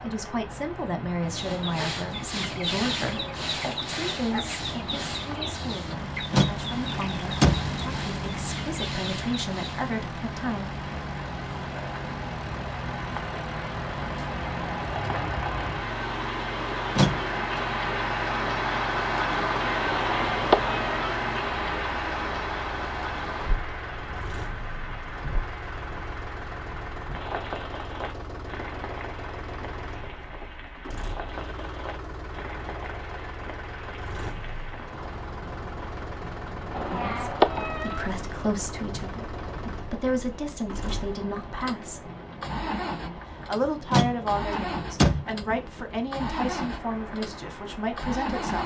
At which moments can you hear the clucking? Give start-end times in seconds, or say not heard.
1.3-9.9.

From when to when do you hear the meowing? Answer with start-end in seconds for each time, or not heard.
19.9-21.1, 36.7-38.2.